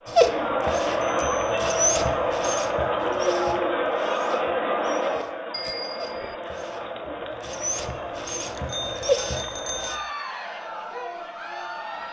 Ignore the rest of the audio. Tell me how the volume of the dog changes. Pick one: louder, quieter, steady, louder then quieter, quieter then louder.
quieter then louder.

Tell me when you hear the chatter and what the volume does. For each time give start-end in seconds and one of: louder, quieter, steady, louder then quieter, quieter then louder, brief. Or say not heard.
0.0-12.0 quieter.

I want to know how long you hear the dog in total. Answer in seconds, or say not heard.
10 s.